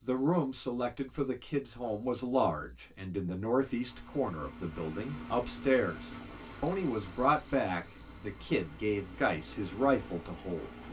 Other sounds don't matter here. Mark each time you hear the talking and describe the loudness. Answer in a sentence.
The talking can be heard from 0.0 to 10.8 s, at a steady volume.